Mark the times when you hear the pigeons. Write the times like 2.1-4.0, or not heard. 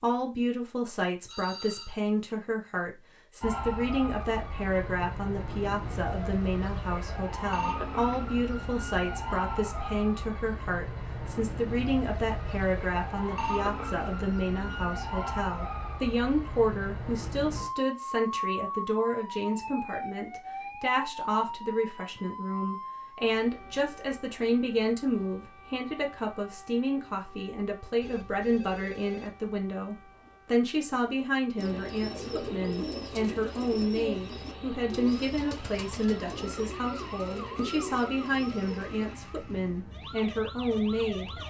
31.6-39.0.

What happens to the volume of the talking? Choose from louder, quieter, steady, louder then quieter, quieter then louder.
steady.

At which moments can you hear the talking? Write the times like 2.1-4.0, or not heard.
0.0-41.3.